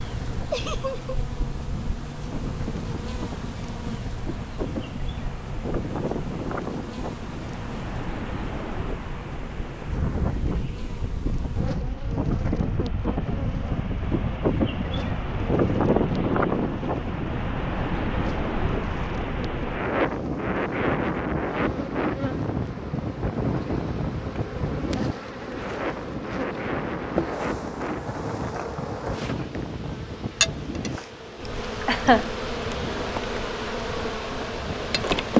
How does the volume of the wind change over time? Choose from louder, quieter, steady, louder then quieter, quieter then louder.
louder then quieter.